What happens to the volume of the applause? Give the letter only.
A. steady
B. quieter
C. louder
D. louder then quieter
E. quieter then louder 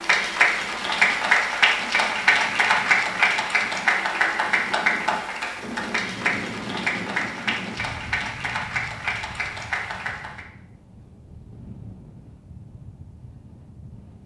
B.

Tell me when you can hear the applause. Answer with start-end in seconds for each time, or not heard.
0.0-10.4.